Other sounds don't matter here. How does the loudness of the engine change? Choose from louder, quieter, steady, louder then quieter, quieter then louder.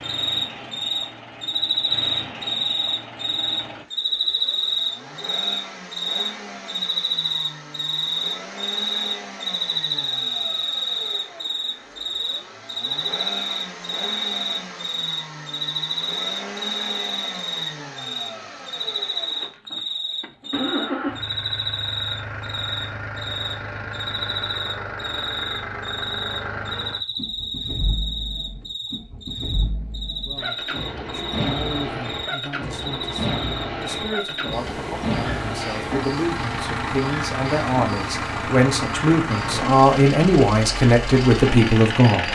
louder.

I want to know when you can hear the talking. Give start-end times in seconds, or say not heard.
30.2-42.3.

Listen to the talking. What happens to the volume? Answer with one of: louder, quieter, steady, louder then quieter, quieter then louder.
louder.